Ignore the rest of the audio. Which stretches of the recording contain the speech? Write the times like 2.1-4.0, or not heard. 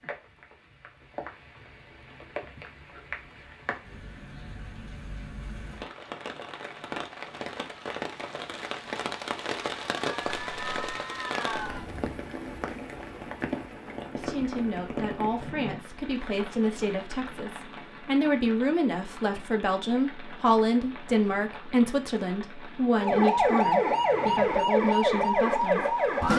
14.2-26.3.